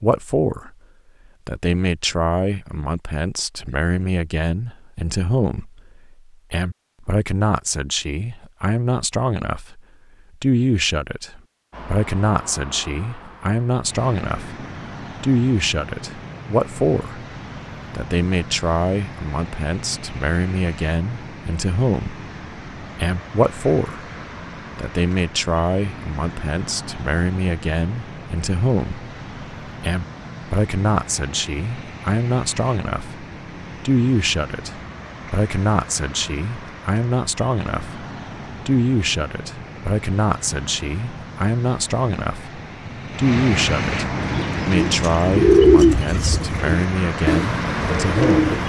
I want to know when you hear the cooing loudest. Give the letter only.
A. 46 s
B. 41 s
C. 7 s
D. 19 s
A.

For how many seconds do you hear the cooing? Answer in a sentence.
The cooing can be heard for 4 seconds in total.